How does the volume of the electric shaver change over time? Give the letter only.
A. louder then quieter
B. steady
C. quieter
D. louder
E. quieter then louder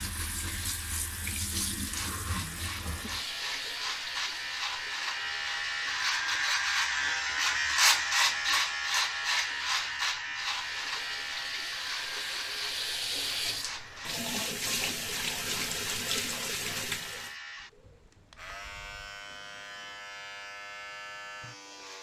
A.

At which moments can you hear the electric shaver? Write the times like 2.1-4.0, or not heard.
0.0-21.9.